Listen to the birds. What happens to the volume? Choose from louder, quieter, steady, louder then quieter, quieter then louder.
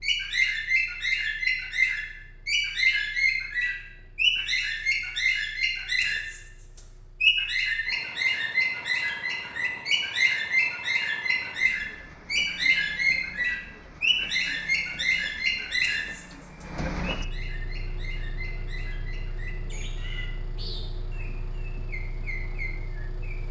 quieter.